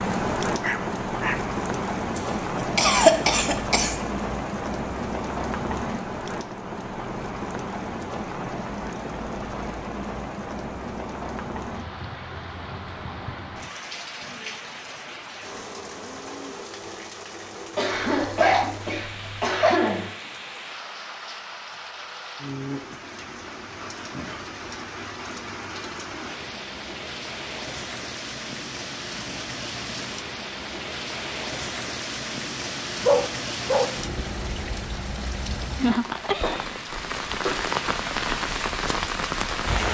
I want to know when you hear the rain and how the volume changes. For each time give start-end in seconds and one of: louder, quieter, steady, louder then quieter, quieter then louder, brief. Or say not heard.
0.0-39.9 quieter then louder.